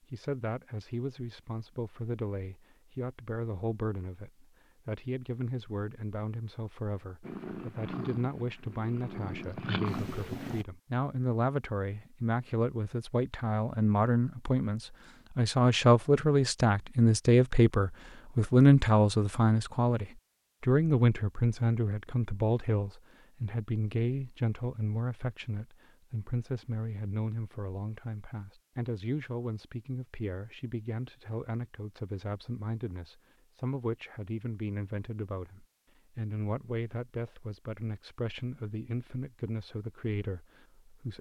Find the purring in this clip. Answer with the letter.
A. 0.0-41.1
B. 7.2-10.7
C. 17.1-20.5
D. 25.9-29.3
B.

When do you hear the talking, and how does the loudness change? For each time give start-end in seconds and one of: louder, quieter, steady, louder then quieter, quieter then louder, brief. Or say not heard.
0.0-41.1 louder then quieter.